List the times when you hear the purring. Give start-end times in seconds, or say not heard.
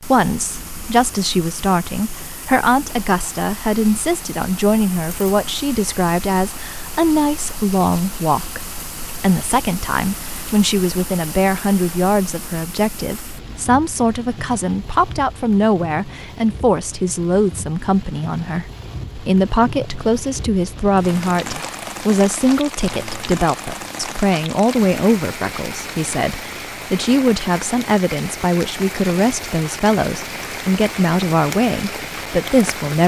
not heard.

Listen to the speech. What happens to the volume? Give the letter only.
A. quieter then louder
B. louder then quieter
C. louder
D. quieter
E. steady
E.